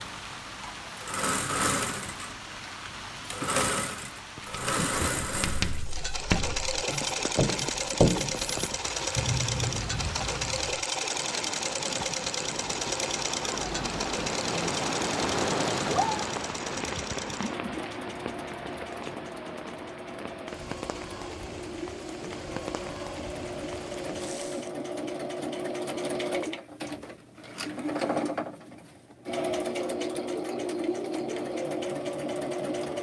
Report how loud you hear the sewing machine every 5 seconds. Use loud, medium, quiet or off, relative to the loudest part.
loud, loud, loud, medium, medium, loud, loud.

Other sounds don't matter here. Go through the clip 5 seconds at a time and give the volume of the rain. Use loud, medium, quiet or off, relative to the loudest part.
medium, medium, loud, loud, medium, off, off.